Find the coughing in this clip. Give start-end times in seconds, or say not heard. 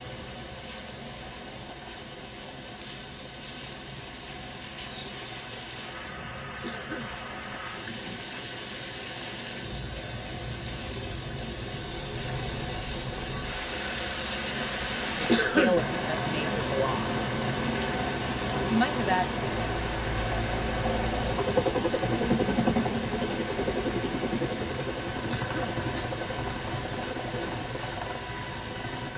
6.6-7.2, 15.2-15.8, 25.2-25.8.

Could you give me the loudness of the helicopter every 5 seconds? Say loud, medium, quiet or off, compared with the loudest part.
quiet, quiet, quiet, medium, loud, medium.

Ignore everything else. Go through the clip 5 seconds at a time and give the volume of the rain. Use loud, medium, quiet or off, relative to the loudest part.
medium, medium, loud, loud, loud, medium.